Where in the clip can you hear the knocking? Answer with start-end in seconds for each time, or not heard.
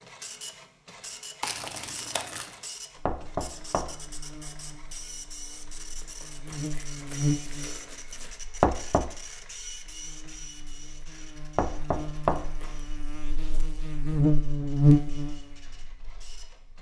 3.0-4.1, 8.6-9.1, 11.6-12.6.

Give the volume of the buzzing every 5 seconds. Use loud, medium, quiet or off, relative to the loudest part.
quiet, medium, loud, quiet.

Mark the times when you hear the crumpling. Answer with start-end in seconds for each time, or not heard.
1.4-2.5, 6.0-8.4, 12.1-12.9.